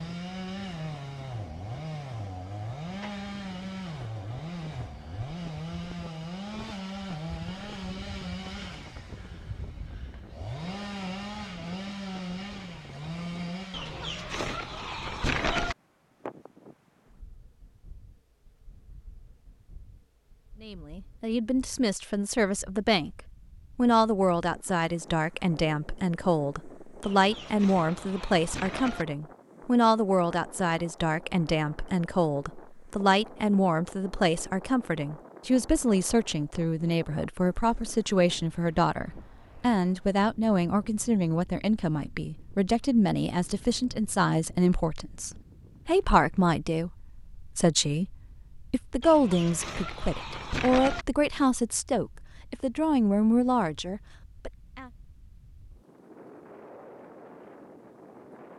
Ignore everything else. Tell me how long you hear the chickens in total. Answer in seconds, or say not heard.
6 s.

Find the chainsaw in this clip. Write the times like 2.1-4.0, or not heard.
0.0-14.3.